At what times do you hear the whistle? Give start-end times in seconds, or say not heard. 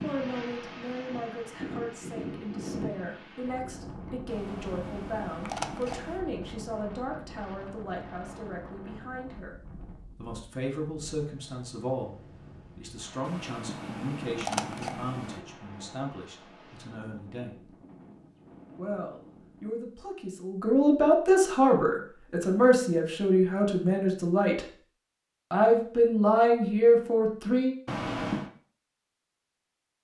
not heard.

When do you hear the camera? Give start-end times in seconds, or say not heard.
4.2-6.2, 13.2-15.4, 27.9-28.5.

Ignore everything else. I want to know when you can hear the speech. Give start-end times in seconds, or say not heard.
0.0-9.6, 10.2-12.2, 12.8-17.7, 18.8-24.6, 25.5-27.8.